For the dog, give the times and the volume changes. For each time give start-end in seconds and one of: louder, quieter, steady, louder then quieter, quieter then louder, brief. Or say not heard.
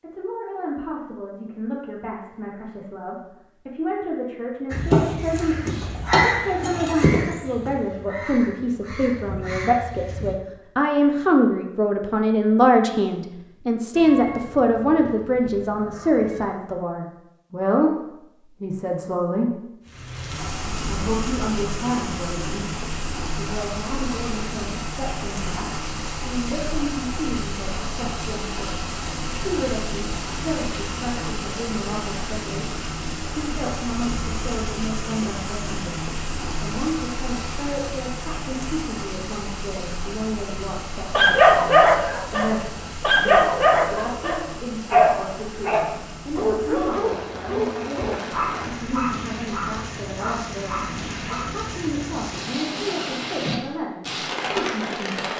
41.1-51.6 quieter.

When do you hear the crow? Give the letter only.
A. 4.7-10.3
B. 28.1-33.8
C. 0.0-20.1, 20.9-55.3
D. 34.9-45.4
A.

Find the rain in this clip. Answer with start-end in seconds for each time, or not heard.
19.9-55.3.